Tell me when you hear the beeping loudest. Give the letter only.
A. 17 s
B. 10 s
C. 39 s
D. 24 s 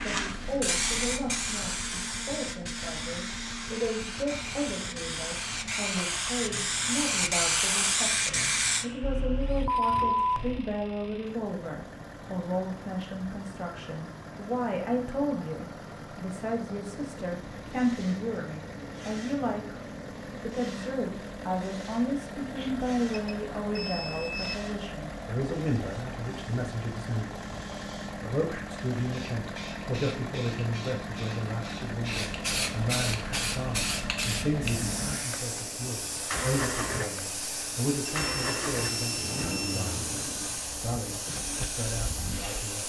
B.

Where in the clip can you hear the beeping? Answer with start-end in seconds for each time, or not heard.
9.0-10.7, 22.6-24.6, 38.0-40.0.